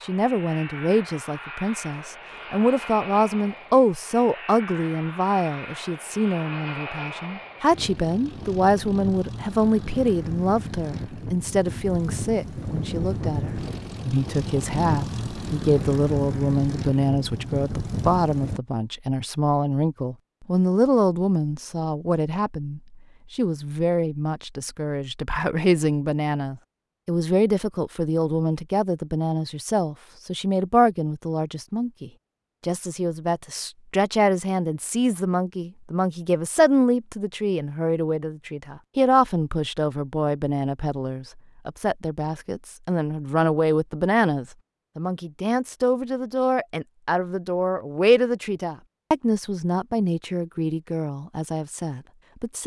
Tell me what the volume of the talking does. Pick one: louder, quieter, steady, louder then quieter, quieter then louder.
steady.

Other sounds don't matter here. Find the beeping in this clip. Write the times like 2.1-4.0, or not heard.
not heard.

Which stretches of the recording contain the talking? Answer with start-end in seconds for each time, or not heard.
0.0-52.6.